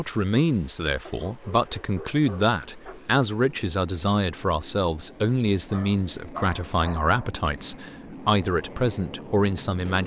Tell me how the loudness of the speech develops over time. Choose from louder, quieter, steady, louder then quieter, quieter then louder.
steady.